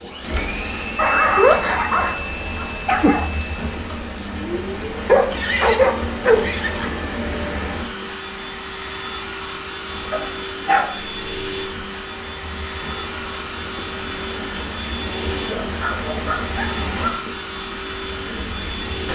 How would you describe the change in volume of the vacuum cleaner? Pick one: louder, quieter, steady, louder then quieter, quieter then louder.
steady.